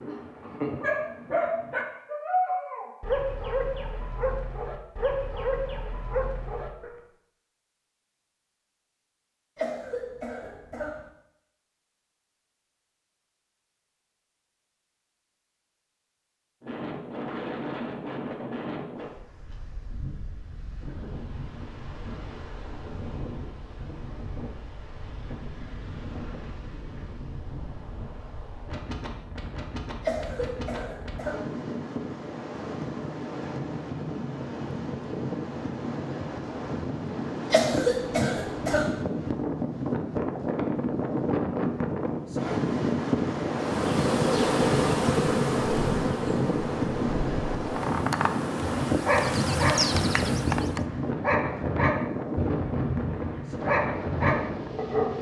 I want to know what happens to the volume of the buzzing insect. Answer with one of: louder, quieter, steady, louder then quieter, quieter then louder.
quieter then louder.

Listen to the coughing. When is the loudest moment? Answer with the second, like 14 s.
38 s.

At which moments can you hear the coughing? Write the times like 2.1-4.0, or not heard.
9.6-11.1, 30.0-31.4, 37.5-39.0.